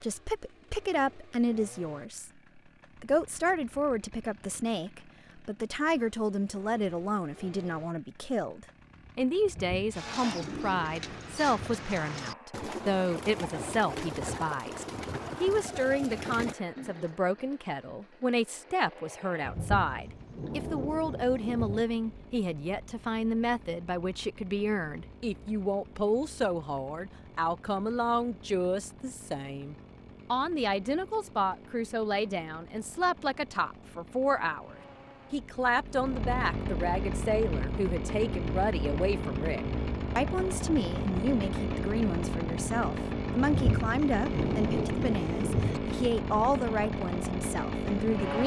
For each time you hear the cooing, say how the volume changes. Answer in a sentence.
The cooing can be heard from 9.9 to 17.1 s, at a steady volume.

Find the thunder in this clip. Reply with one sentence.
The thunder can be heard from 9.4 to 11.8 s, from 19.4 to 21.9 s and from 43.4 to 45.8 s.